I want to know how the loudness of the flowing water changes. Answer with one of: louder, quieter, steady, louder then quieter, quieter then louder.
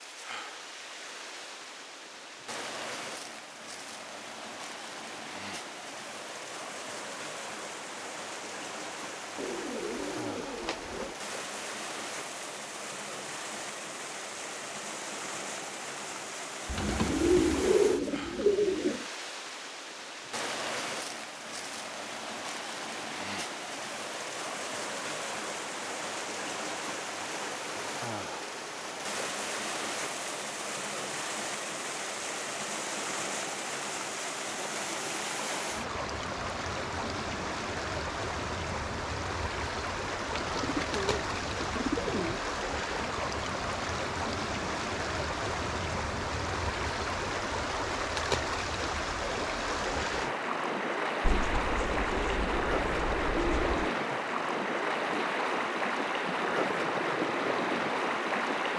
louder.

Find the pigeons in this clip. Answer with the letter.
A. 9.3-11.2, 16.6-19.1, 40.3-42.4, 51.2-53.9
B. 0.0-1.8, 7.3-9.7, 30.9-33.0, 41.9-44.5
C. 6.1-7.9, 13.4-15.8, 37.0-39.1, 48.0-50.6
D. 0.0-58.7
A.